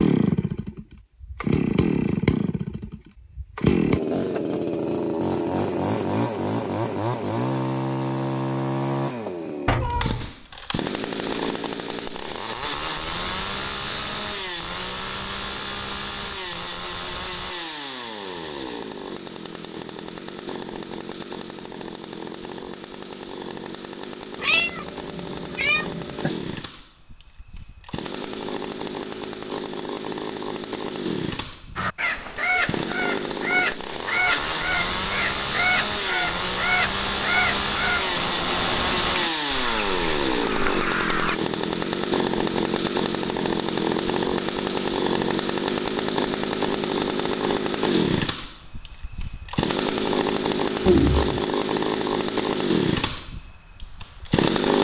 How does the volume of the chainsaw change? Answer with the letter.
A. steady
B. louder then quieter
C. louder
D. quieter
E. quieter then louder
E.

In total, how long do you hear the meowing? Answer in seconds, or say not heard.
3 s.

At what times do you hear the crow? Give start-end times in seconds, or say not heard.
31.8-41.4.